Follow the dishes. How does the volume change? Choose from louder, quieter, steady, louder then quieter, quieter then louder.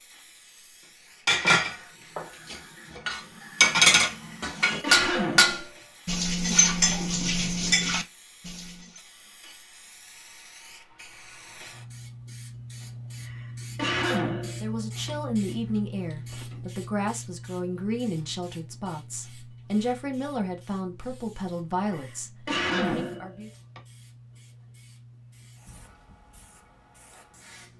louder then quieter.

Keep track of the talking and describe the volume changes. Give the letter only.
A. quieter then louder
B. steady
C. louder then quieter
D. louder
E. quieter
B.